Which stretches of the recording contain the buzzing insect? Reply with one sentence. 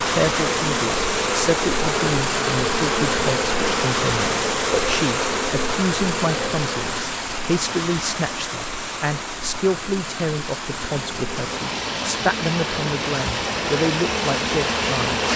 The buzzing insect can be heard from 0.0 to 7.0 s and from 10.8 to 15.3 s.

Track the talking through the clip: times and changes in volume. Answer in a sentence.
You can hear the talking from 0.1 to 15.2 s, at a steady volume.